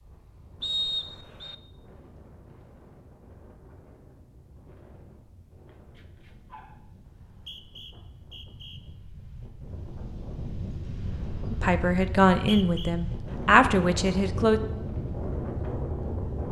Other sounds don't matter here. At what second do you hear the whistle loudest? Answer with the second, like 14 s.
1 s.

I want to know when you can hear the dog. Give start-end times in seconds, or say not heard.
5.7-7.2.